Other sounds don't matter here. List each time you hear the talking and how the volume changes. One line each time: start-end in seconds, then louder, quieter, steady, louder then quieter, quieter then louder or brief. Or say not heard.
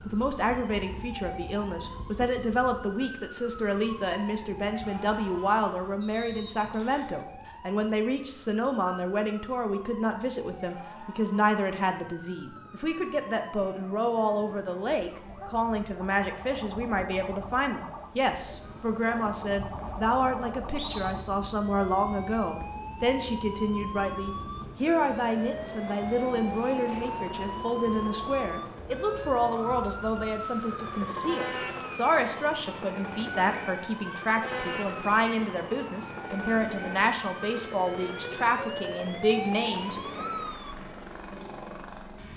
0.1-40.0 steady.